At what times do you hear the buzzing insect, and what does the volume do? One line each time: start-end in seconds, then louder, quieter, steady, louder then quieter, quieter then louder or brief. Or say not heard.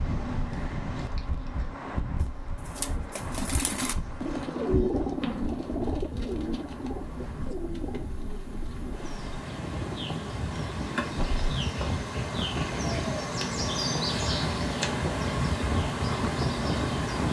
0.0-17.2 louder.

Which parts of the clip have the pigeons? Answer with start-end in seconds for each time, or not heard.
2.2-11.4.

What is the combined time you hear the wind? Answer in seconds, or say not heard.
17 s.